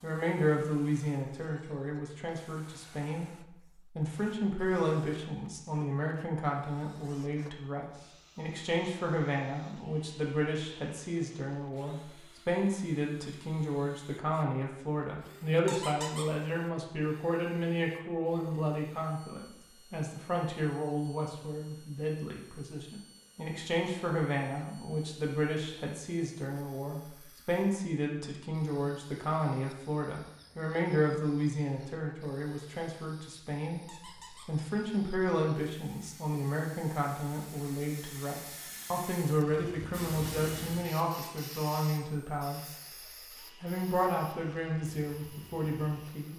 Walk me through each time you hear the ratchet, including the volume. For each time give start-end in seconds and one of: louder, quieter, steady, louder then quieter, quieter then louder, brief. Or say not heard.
not heard.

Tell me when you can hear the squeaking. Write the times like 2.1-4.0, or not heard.
15.7-16.3, 33.9-34.5.